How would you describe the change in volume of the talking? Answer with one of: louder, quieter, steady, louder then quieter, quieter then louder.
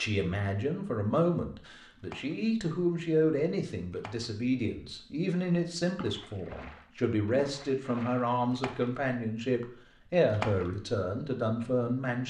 steady.